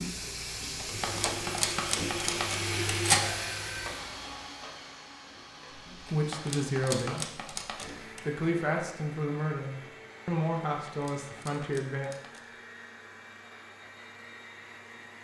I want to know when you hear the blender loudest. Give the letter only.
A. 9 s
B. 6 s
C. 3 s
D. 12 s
C.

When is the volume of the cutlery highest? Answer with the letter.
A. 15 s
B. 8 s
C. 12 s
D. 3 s
D.